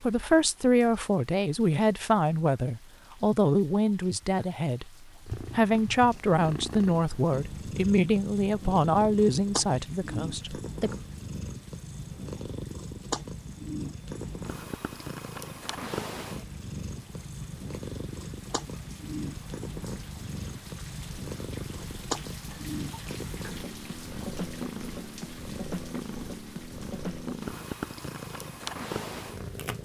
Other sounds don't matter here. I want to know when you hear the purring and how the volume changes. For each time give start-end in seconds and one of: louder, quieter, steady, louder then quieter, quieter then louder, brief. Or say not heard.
5.2-29.8 steady.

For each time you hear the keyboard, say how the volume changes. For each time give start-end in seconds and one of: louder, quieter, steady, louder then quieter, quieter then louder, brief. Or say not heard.
not heard.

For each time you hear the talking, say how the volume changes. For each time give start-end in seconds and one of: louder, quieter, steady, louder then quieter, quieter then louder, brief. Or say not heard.
0.0-10.9 steady.